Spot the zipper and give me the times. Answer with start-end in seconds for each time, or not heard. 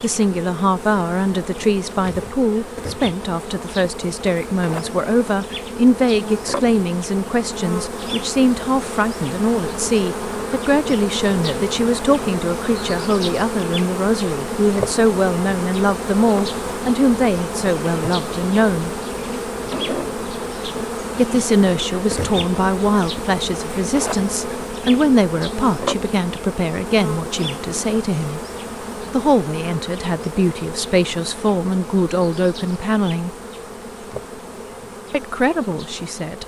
not heard.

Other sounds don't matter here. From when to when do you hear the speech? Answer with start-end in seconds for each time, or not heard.
0.0-18.9, 21.1-28.4, 29.1-33.4, 35.1-36.4.